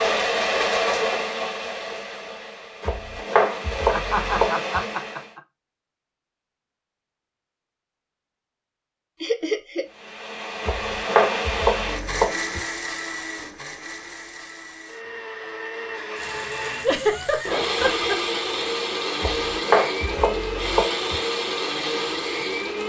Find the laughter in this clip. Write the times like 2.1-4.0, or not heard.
3.9-5.4, 9.2-9.9, 16.8-18.2.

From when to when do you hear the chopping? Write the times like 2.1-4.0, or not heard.
2.8-4.7, 10.6-12.6, 19.2-21.1.